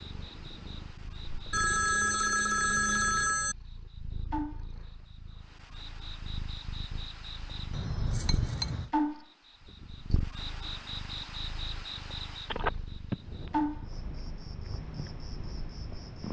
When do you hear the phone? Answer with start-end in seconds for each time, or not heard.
1.5-3.5, 7.7-8.9, 12.5-13.5.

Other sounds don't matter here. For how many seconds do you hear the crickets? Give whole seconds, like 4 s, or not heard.
16 s.